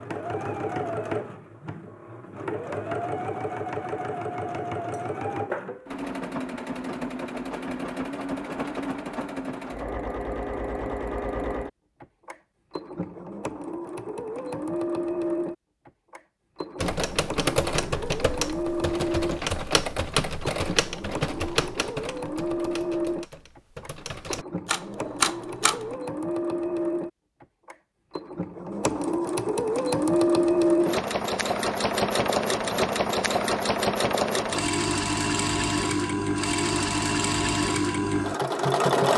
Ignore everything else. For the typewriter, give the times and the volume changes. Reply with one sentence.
The typewriter can be heard from 16.8 to 25.9 s, getting quieter then louder.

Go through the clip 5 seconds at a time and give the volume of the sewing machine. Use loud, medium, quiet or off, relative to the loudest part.
medium, medium, medium, medium, medium, medium, loud, loud.